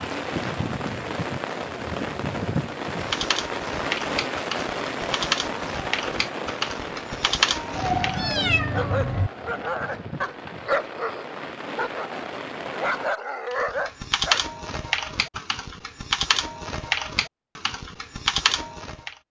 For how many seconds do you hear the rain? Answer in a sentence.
The rain can be heard for 13 seconds in total.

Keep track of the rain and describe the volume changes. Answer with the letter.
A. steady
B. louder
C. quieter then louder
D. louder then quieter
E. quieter
E.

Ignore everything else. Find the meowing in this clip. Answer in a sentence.
The meowing can be heard from 7.8 to 9.3 s.